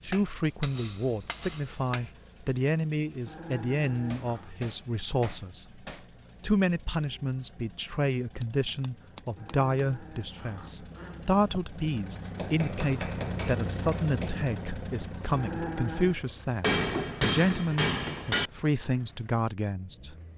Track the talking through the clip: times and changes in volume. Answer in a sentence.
You can hear the talking from 0.0 to 20.1 s, at a steady volume.